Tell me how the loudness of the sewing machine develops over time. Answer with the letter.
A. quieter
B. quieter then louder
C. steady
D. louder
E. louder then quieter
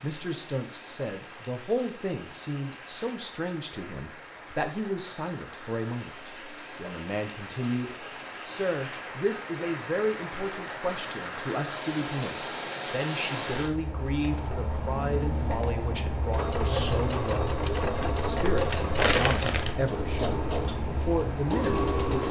C.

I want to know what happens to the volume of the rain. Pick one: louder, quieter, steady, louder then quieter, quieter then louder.
louder.